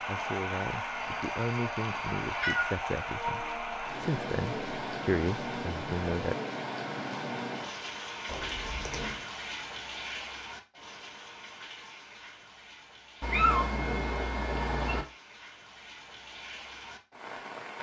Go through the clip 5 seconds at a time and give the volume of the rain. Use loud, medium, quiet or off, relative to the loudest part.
loud, loud, medium, medium.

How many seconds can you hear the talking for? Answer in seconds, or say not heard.
6 s.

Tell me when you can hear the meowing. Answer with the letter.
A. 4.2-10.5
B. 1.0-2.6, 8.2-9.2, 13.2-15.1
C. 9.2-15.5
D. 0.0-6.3
B.